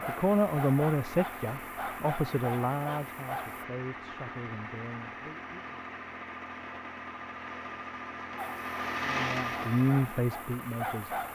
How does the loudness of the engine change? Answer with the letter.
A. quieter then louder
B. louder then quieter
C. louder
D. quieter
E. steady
C.